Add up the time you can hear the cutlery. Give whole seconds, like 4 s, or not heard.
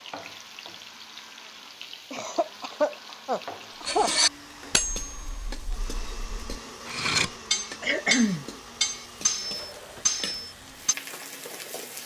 7 s.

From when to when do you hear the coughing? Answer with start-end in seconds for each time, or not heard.
2.1-4.1, 7.8-8.4.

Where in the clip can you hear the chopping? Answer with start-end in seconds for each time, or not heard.
not heard.